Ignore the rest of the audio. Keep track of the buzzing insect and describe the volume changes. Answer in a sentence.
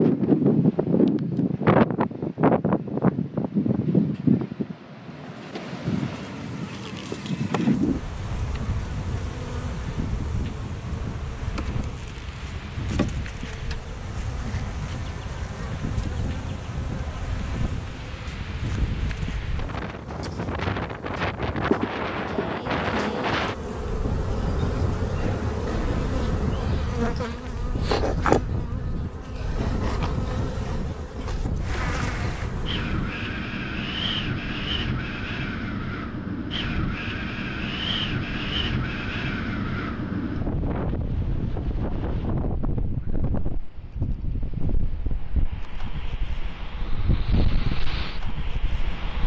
The volume of the buzzing insect goes up.